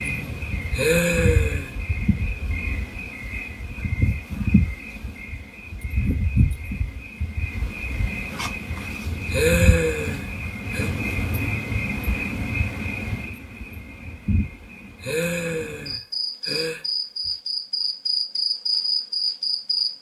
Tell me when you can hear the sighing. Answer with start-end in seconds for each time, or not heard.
0.7-1.7, 9.3-10.9, 15.0-17.3.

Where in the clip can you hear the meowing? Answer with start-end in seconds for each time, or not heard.
not heard.